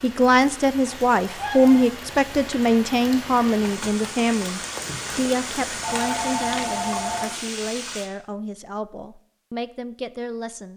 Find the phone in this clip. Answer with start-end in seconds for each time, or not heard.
1.3-1.9, 5.8-7.2.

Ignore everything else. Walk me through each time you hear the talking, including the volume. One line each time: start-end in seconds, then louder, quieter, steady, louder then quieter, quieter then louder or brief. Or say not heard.
0.0-10.7 quieter.